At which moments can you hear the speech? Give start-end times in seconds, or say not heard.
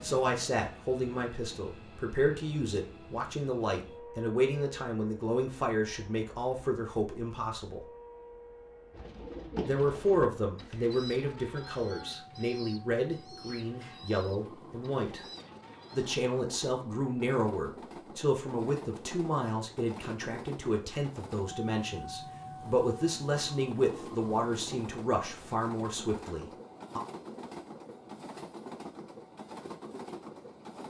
0.0-7.8, 9.6-15.2, 15.9-27.0.